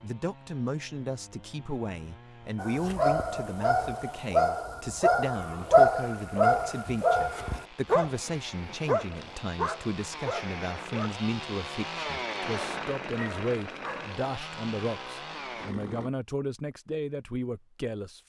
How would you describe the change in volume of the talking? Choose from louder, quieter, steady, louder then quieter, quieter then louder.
steady.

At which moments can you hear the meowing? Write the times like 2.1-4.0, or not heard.
not heard.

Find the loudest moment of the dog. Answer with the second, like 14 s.
6 s.